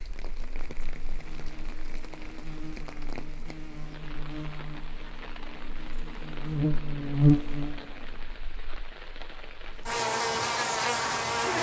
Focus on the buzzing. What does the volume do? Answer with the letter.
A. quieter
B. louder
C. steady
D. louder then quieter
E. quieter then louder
B.